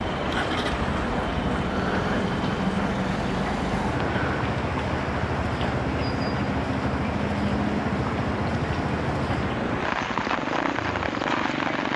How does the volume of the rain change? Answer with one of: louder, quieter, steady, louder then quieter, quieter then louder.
steady.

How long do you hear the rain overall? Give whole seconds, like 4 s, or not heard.
12 s.